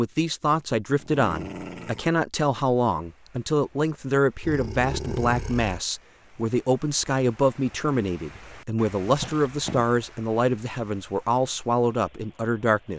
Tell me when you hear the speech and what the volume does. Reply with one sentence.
The speech can be heard from 0.0 to 12.9 s, at a steady volume.